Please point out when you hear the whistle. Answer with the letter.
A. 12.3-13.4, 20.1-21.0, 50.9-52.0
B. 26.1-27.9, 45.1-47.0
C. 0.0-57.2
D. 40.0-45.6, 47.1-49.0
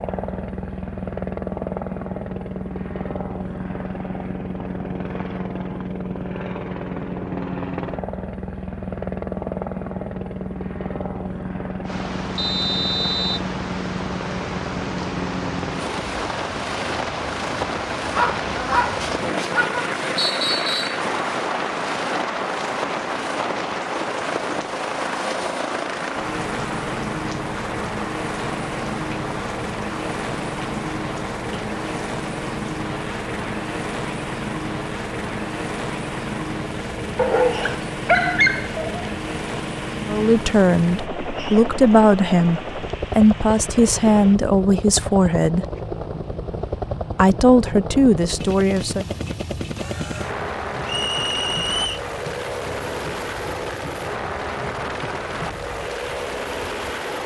A.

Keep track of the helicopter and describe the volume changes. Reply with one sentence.
The loudness of the helicopter stays about the same.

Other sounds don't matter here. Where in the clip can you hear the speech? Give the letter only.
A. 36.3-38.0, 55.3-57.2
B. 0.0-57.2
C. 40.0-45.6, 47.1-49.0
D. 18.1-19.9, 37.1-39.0
C.